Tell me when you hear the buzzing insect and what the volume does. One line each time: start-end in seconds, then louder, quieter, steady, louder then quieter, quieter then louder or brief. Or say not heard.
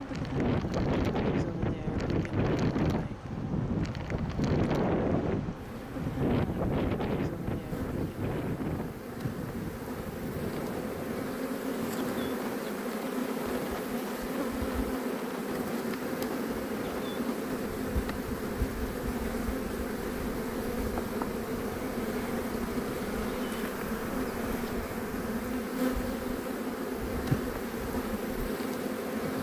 0.0-29.3 louder.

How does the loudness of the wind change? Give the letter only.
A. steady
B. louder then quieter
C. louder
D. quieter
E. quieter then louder
D.